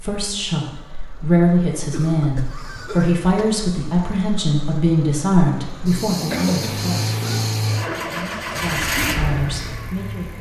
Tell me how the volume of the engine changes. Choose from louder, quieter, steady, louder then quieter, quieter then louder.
louder.